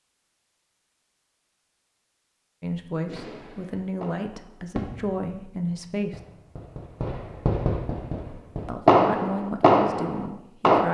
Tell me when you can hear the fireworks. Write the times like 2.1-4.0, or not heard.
3.0-10.8.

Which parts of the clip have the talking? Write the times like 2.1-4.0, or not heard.
2.6-6.2, 8.7-10.9.